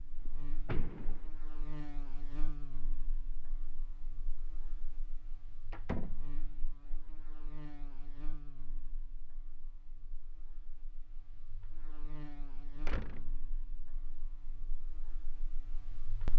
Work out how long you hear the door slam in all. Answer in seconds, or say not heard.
2 s.